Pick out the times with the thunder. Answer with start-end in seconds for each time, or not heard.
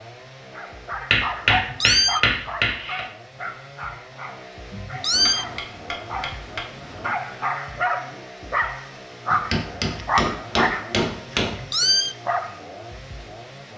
not heard.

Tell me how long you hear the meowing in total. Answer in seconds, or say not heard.
2 s.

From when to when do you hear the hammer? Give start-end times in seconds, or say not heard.
1.1-3.0, 5.1-7.1, 9.3-11.6.